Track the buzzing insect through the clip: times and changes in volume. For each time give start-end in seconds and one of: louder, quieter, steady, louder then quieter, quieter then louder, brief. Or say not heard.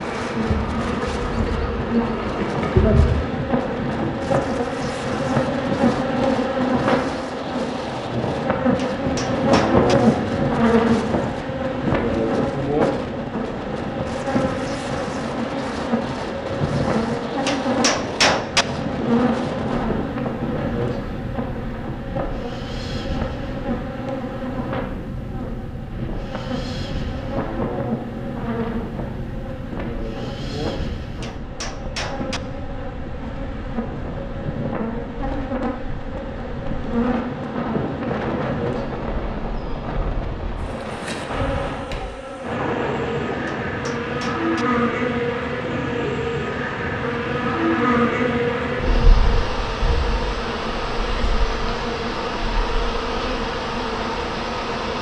0.0-54.9 quieter then louder.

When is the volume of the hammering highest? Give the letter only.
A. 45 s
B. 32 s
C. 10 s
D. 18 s
D.